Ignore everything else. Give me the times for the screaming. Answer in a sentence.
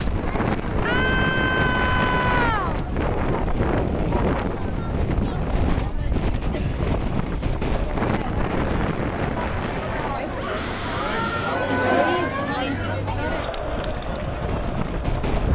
You can hear the screaming from 0.8 to 2.8 s and from 10.3 to 11.7 s.